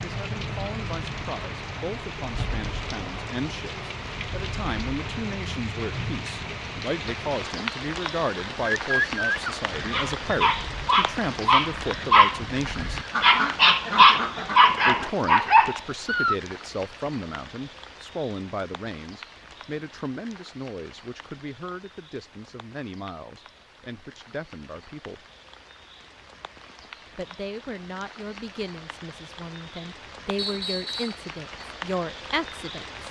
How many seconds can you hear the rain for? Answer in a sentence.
You can hear the rain for 33 seconds altogether.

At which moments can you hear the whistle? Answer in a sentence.
The whistle can be heard from 30.4 to 31.2 s.